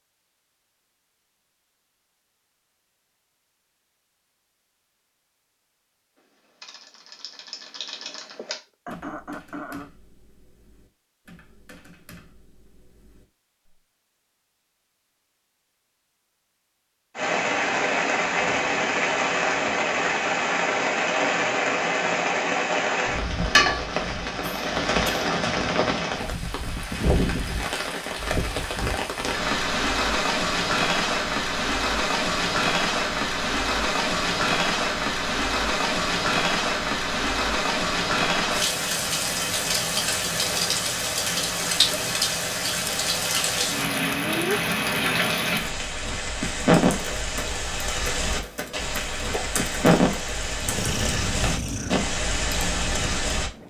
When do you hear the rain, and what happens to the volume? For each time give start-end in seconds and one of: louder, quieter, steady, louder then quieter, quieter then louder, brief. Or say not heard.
17.1-53.5 steady.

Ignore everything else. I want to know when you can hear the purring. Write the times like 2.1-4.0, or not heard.
50.5-53.6.